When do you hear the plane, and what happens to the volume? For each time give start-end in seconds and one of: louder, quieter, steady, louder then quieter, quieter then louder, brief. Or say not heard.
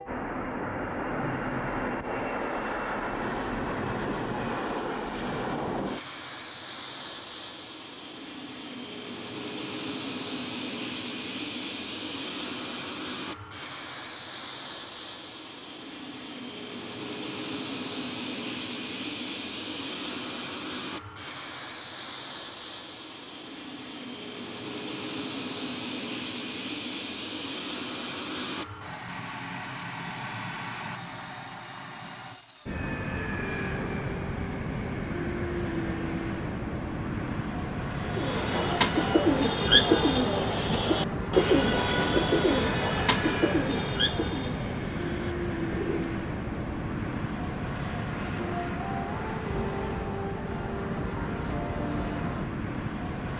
0.0-53.3 steady.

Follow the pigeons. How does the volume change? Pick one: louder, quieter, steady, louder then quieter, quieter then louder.
quieter.